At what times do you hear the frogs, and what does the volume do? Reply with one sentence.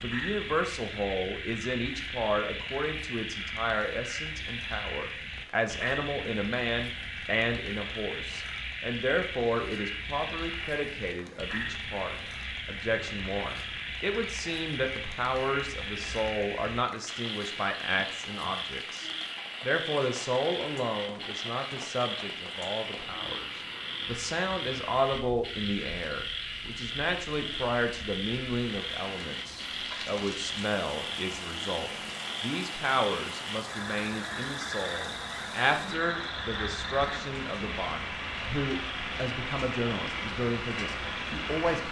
The frogs can be heard from 0.0 to 41.8 s, at a steady volume.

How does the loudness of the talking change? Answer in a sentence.
The volume of the talking stays about the same.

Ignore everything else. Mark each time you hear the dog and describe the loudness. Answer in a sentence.
The dog can't be heard in this clip.